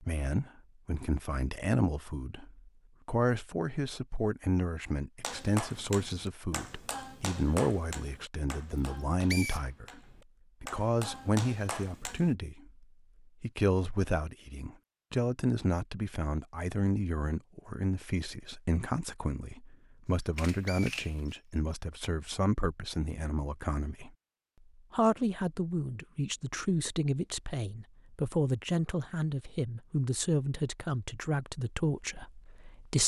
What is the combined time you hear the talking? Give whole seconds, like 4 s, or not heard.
32 s.